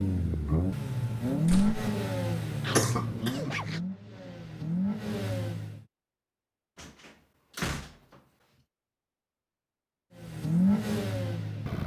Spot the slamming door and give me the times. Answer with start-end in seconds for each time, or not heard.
1.4-1.9, 6.8-8.2.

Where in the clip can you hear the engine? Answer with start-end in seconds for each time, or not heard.
0.0-5.8, 10.2-11.8.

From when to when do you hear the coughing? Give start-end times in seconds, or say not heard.
2.6-3.8.